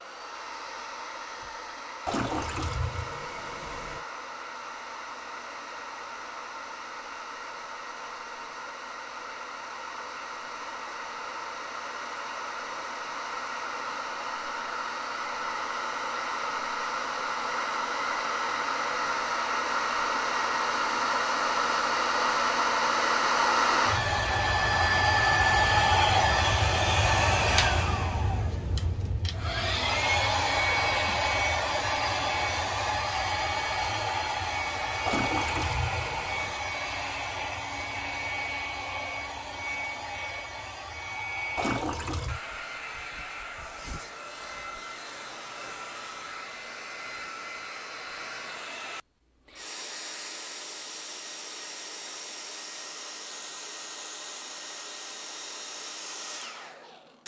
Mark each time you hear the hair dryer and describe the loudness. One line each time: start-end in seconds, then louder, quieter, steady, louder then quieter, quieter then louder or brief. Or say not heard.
0.0-57.2 louder then quieter.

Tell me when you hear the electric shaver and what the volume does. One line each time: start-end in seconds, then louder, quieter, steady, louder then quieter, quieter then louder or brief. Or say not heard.
not heard.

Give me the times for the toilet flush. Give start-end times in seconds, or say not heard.
2.0-4.0, 35.0-36.6, 41.5-42.4.